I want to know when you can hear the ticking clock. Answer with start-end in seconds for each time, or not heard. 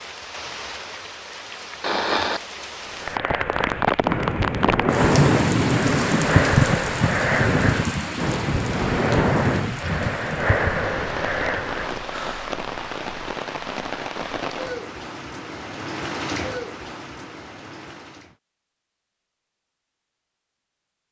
not heard.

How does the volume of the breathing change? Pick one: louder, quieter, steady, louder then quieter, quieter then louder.
steady.